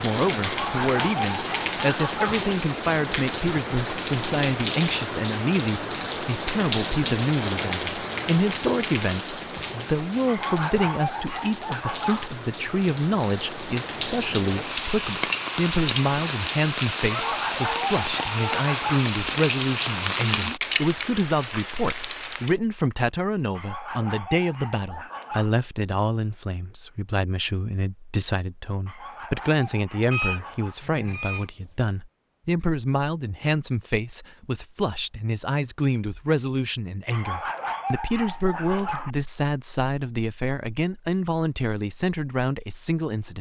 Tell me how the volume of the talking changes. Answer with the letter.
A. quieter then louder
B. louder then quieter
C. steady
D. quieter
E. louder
C.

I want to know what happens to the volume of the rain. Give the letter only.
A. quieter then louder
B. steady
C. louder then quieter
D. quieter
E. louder
A.